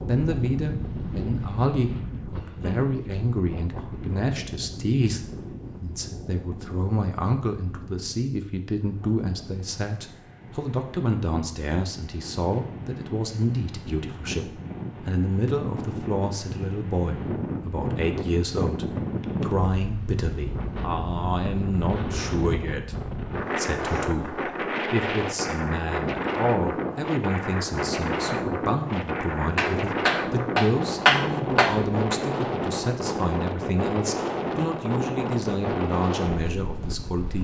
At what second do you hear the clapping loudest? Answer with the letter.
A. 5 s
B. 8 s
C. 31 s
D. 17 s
C.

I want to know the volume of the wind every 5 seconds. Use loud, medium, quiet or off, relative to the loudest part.
medium, quiet, medium, loud, loud, loud, loud, loud.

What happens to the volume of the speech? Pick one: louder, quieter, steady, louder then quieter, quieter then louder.
steady.